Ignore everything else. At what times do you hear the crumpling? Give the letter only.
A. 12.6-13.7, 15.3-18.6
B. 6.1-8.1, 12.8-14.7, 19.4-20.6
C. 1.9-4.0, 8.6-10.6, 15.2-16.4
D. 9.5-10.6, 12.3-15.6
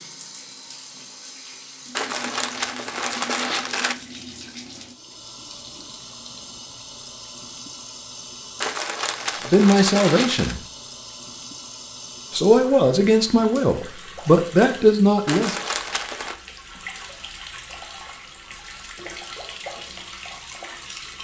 C.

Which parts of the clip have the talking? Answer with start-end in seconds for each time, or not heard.
9.5-10.6, 12.3-15.6.